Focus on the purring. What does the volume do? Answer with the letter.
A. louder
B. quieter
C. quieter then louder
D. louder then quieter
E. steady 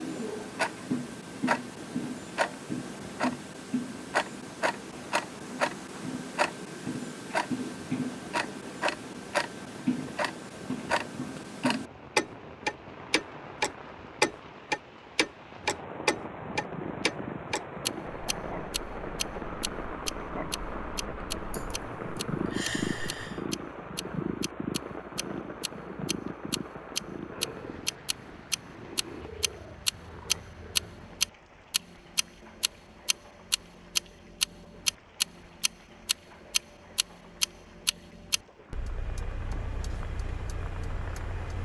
D.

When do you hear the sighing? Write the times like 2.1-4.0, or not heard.
21.5-23.4.